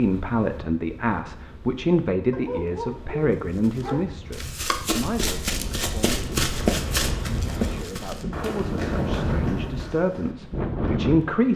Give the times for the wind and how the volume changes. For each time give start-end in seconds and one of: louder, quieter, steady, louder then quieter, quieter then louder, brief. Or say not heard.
0.0-11.5 louder.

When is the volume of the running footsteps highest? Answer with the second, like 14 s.
7 s.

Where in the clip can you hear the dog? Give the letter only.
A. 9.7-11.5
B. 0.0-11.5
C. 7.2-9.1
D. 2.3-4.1
D.